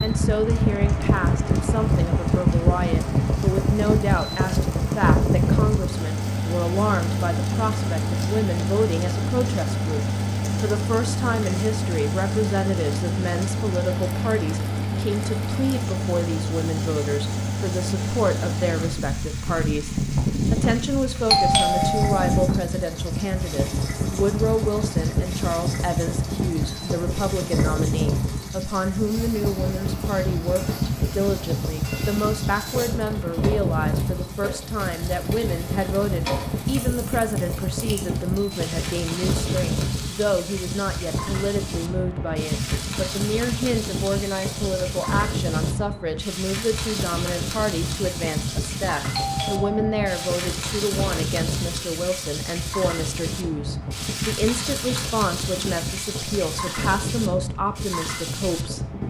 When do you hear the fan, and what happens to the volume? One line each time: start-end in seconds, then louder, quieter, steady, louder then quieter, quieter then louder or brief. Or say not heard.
0.0-59.0 quieter.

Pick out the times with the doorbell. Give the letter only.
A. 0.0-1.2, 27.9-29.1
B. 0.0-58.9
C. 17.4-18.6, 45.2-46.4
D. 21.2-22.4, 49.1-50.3
D.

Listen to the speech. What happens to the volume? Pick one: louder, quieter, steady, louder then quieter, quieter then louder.
steady.